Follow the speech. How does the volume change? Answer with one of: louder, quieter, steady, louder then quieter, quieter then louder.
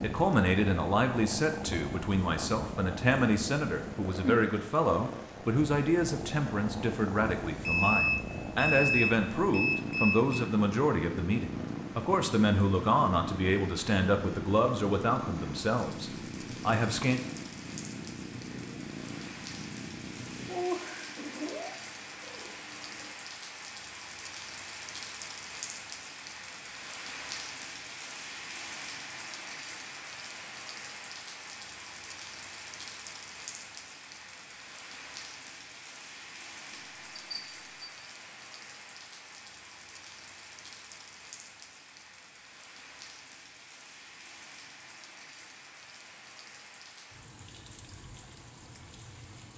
steady.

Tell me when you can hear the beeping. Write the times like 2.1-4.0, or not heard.
7.6-10.4, 36.7-37.9.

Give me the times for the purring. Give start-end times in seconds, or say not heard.
0.0-23.1.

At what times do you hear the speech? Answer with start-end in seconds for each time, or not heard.
0.0-17.2.